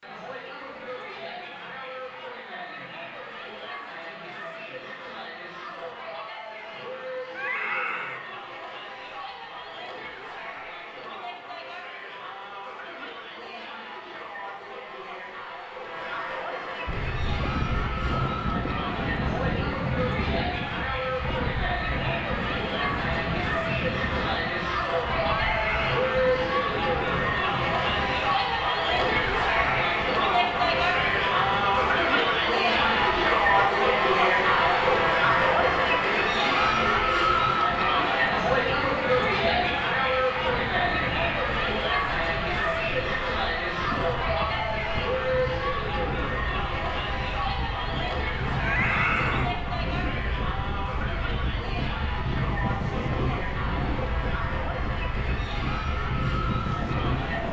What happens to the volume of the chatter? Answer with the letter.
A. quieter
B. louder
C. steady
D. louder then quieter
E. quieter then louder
D.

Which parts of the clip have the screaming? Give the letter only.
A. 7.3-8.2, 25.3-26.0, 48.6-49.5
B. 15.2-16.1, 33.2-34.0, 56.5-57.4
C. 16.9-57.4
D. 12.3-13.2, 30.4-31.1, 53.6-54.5
A.